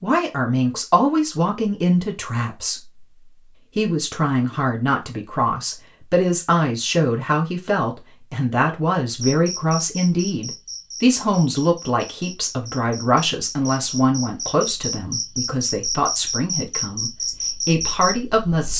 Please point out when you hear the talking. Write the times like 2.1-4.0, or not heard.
0.0-3.0, 3.8-18.7.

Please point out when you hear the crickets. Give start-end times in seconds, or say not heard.
9.2-18.7.